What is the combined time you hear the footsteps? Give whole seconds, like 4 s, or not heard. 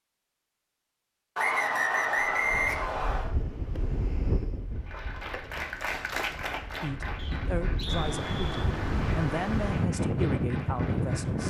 not heard.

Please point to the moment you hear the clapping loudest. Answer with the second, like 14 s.
6 s.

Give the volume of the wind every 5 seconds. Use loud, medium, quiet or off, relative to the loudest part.
medium, medium, loud.